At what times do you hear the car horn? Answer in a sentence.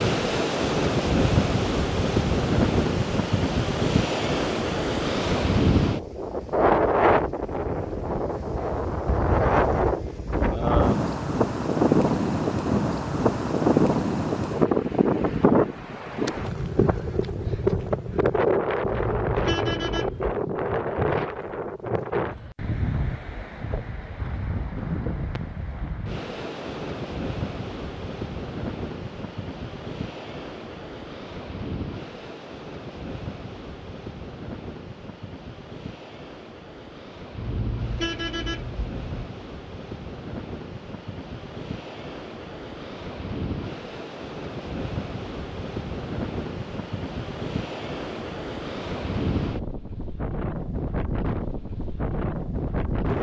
You can hear the car horn from 18.8 to 20.4 s and from 37.4 to 39.3 s.